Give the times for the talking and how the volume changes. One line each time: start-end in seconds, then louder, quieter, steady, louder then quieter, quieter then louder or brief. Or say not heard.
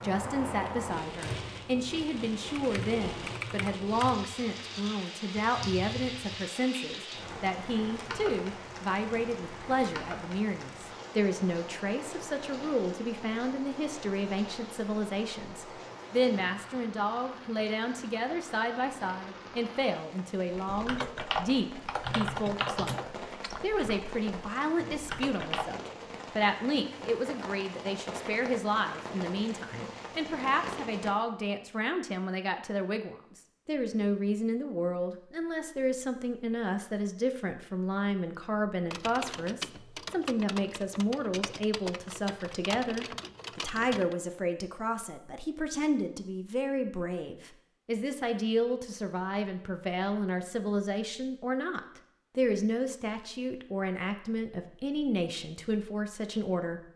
0.0-56.8 steady.